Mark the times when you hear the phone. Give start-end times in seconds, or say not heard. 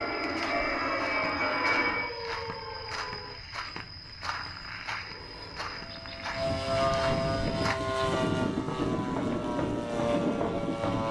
not heard.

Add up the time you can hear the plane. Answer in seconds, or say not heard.
8 s.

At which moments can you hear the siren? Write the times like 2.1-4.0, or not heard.
0.0-3.4.